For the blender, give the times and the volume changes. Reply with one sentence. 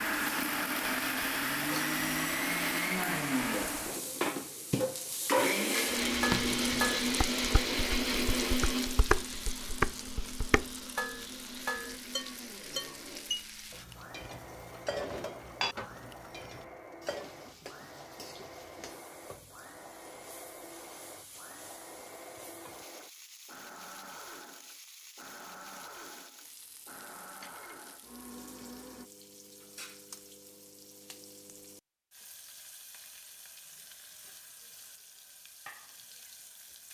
The blender can be heard from 0.0 to 29.1 s, getting quieter.